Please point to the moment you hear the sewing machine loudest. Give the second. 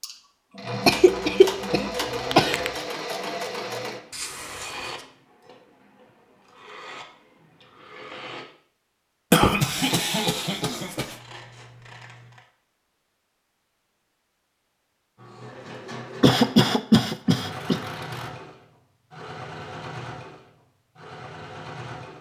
2 s.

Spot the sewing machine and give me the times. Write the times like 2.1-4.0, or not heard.
0.0-8.4, 15.2-22.1.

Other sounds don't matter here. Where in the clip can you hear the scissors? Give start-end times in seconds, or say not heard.
4.1-5.0, 11.1-12.4, 17.5-18.3.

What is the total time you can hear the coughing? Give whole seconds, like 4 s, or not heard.
5 s.